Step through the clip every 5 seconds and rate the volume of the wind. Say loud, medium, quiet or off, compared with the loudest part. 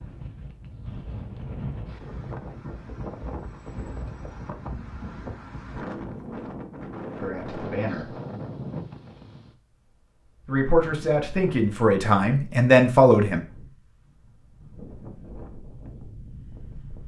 loud, loud, medium, medium.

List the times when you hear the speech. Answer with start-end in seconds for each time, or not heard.
7.2-8.2, 10.4-13.4.